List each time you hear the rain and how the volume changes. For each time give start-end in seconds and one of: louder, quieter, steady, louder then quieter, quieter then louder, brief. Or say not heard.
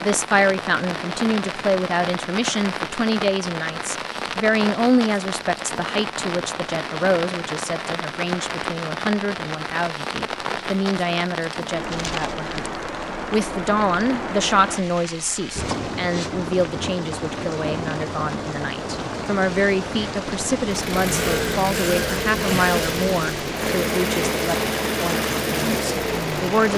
0.0-26.7 steady.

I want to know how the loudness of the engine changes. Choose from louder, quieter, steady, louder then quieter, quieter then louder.
steady.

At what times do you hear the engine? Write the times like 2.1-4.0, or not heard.
20.7-26.7.